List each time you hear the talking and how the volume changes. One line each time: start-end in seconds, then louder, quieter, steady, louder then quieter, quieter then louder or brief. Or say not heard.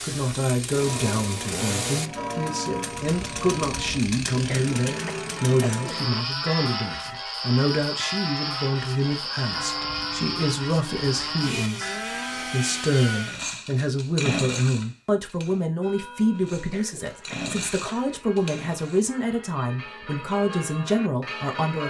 0.0-21.8 steady.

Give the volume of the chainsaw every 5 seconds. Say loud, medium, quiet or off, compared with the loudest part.
loud, loud, loud, medium, off.